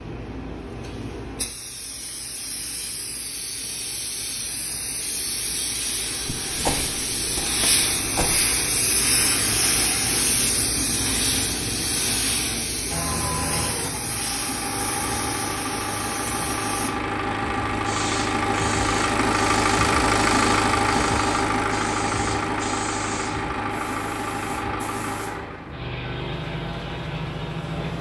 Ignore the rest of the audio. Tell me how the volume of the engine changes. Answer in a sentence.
The volume of the engine goes up, then down.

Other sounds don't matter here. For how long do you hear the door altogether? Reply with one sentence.
The door can be heard for 2 seconds in total.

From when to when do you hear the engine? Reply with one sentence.
The engine can be heard from 12.8 to 27.9 s.